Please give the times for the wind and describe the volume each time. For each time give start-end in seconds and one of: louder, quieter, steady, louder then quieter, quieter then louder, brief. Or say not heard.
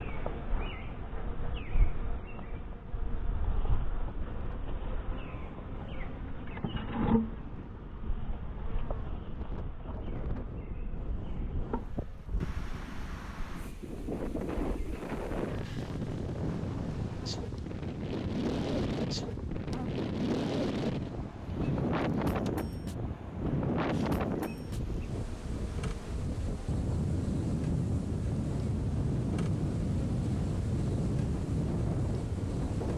0.0-32.9 louder.